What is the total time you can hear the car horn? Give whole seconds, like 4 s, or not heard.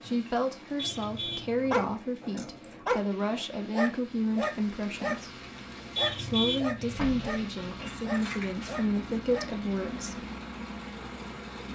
2 s.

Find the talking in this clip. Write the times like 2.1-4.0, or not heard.
0.0-5.4, 6.2-10.2.